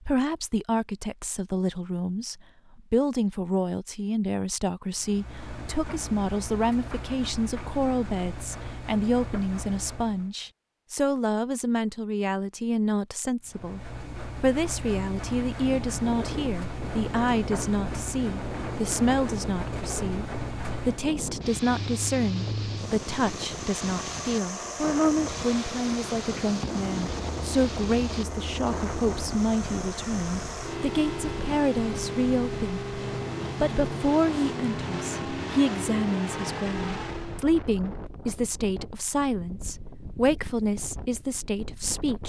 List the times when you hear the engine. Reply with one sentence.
The engine can be heard from 5.0 to 10.3 s and from 13.4 to 37.5 s.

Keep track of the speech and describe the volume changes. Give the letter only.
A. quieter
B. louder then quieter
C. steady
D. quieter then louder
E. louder
C.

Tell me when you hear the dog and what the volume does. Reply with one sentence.
You can't hear the dog here.